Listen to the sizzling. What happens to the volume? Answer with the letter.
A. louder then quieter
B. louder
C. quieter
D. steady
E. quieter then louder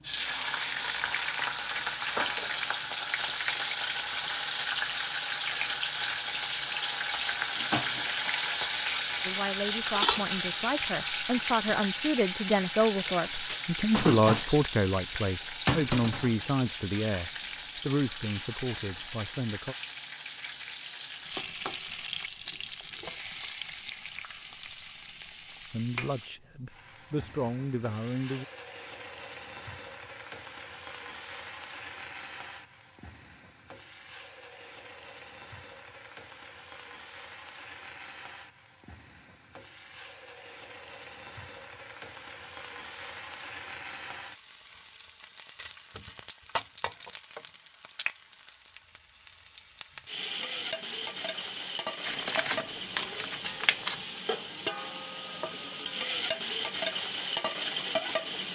E.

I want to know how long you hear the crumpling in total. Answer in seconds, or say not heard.
2 s.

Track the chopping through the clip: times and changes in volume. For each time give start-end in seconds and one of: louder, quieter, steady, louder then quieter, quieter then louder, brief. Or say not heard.
not heard.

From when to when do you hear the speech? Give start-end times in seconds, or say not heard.
9.2-19.8, 25.7-28.4.